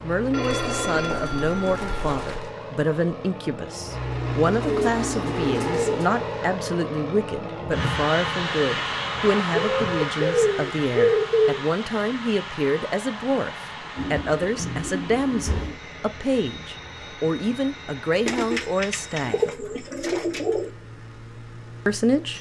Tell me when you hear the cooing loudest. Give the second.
11 s.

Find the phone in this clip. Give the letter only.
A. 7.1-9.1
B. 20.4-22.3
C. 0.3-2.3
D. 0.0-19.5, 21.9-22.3
C.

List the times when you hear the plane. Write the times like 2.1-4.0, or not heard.
0.0-22.3.